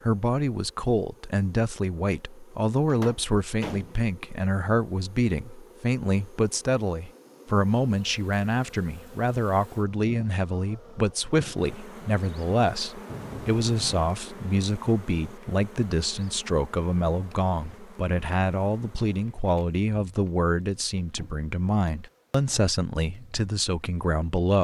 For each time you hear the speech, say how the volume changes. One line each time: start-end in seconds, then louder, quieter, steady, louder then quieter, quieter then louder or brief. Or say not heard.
0.1-24.5 steady.